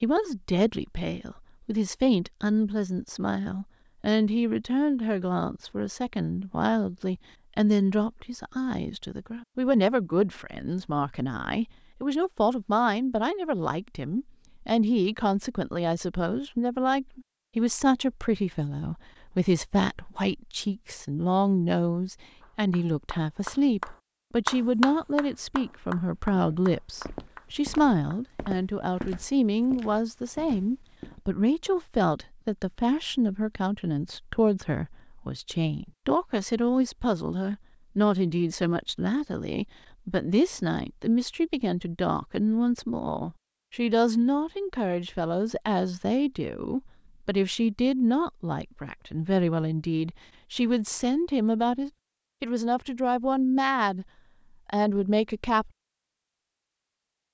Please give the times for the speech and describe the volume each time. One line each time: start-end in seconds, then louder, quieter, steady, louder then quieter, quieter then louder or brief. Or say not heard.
0.0-54.0 steady
54.6-55.7 brief.